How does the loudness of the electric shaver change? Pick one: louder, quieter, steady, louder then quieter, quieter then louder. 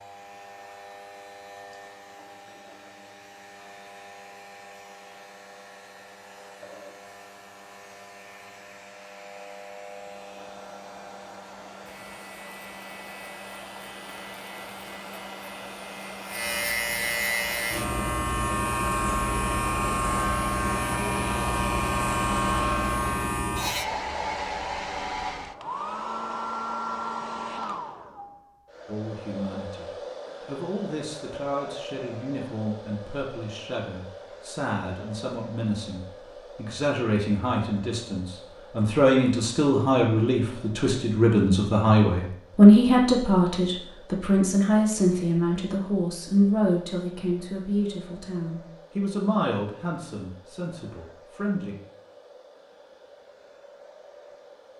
louder.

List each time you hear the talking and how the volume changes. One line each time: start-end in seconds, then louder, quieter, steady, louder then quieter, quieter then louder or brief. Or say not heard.
28.9-51.8 louder then quieter.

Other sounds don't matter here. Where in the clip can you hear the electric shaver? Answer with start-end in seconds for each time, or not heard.
0.0-23.9.